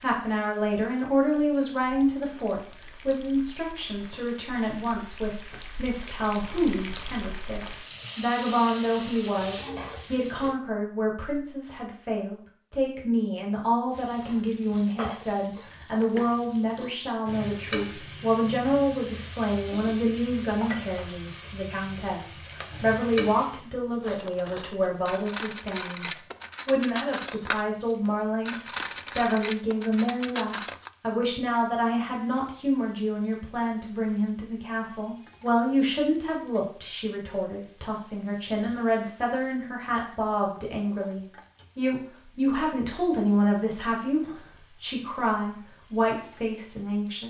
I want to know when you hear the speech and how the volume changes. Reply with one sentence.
You can hear the speech from 0.0 to 47.2 s, at a steady volume.